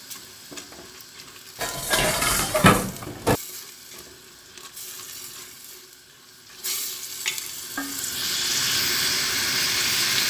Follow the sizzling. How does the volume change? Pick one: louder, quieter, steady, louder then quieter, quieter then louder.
louder.